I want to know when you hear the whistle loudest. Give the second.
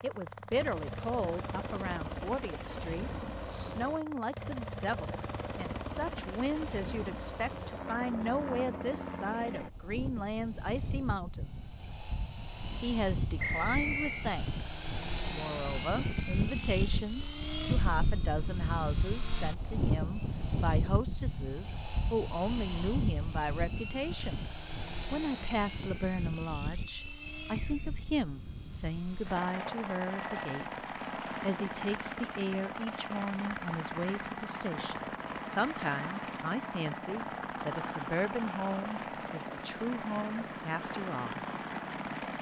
14 s.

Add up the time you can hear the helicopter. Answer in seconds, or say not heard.
42 s.